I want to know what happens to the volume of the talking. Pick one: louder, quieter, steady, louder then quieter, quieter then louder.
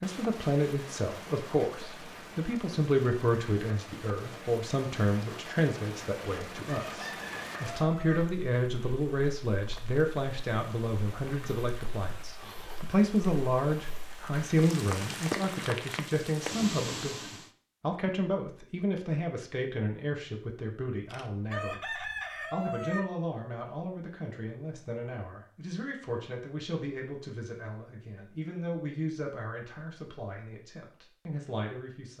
quieter.